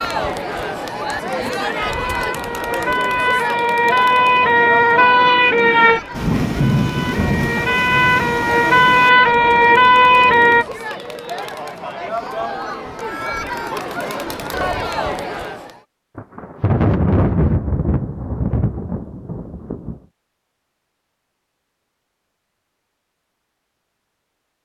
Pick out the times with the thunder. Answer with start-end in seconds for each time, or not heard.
6.1-9.1, 16.1-20.0.